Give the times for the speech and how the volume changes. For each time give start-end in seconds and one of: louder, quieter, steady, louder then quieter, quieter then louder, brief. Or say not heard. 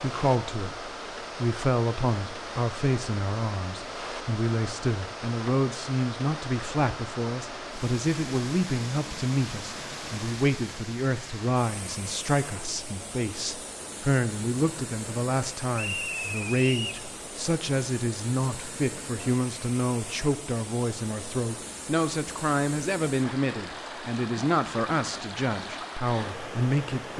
0.0-27.1 steady.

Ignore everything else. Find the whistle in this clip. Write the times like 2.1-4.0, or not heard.
15.8-17.1.